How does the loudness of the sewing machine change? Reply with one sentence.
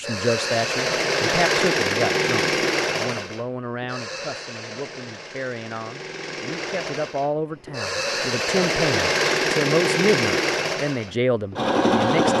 The volume of the sewing machine goes down, then up.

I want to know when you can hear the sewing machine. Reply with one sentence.
You can hear the sewing machine from 0.0 to 12.3 s.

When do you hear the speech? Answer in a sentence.
The speech can be heard from 0.0 to 12.3 s.